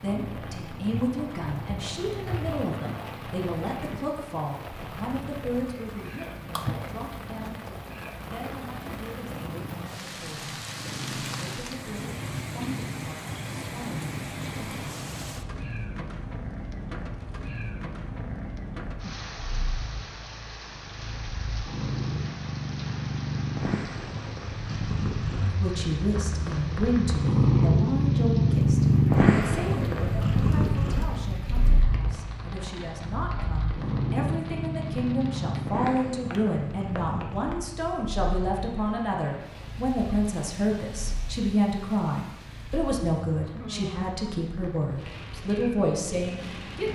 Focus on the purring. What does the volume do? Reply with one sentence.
The volume of the purring goes up, then down.